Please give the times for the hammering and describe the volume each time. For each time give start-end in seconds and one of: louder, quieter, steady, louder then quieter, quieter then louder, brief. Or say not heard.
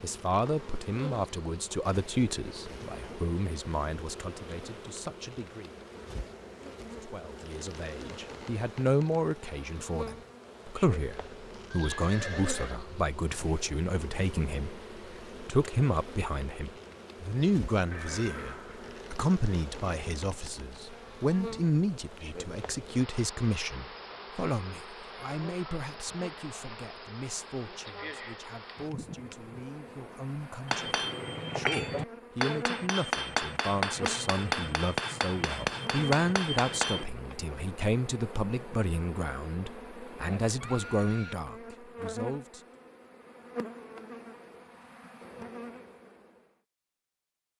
30.6-37.0 steady.